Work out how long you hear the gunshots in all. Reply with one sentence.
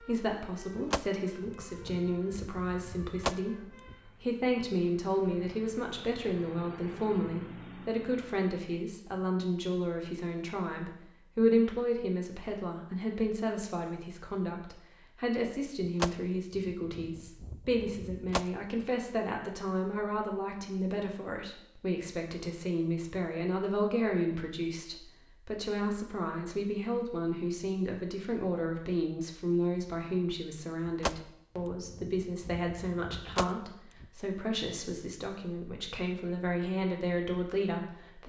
The gunshots can be heard for 9 seconds in total.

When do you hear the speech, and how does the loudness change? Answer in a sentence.
You can hear the speech from 0.0 to 38.2 s, at a steady volume.